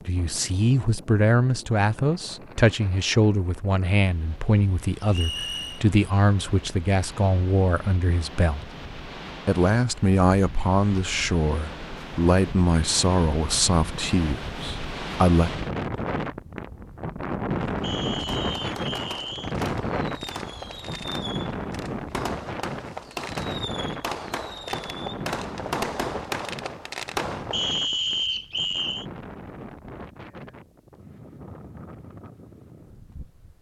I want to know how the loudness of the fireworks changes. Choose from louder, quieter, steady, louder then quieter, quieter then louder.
louder.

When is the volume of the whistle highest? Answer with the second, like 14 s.
28 s.